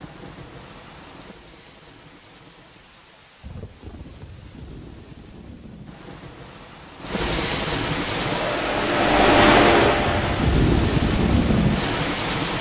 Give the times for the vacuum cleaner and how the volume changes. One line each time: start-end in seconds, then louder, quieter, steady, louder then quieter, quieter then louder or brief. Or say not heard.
8.1-12.5 louder then quieter.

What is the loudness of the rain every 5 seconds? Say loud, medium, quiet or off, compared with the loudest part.
quiet, medium, loud.